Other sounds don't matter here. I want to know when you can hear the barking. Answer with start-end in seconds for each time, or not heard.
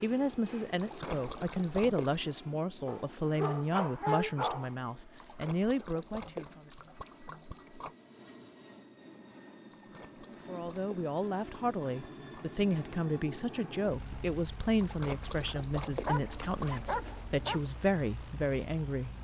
2.9-4.8, 16.1-17.7.